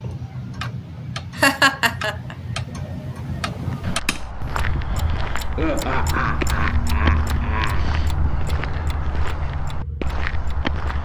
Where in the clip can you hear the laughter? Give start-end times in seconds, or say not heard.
1.4-2.4, 5.5-7.9.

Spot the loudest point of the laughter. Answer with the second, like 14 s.
2 s.